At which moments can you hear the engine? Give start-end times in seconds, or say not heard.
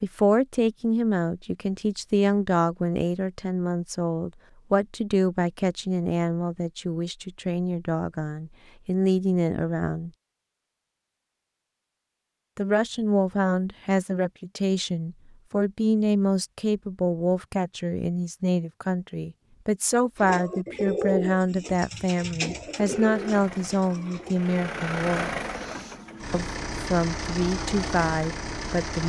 22.5-29.0.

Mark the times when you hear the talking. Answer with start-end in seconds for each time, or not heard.
0.0-10.1, 12.6-25.3, 26.3-29.0.